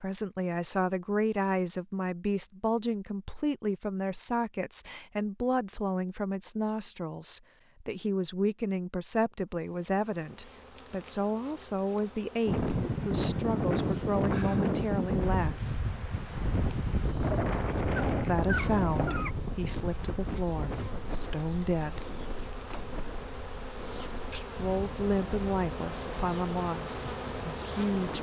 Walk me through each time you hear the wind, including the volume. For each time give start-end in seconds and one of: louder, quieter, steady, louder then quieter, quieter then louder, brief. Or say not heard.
12.4-28.1 quieter.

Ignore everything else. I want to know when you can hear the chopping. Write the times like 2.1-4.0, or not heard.
not heard.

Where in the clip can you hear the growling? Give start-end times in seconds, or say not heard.
17.2-19.4.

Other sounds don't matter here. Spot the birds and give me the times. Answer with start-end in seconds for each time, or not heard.
not heard.